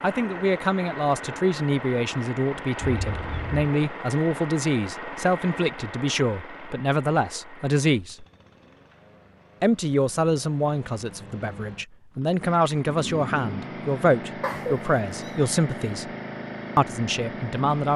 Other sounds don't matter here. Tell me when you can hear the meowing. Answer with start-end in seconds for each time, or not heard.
2.8-3.6, 14.4-15.6.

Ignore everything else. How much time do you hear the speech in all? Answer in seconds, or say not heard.
16 s.